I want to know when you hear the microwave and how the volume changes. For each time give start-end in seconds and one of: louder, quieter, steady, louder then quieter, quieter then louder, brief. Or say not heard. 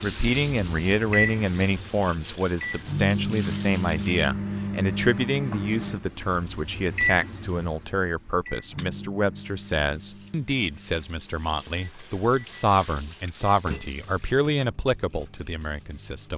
0.0-16.3 quieter.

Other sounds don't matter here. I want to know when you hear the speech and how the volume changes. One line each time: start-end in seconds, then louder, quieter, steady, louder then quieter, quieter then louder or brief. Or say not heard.
0.0-16.3 steady.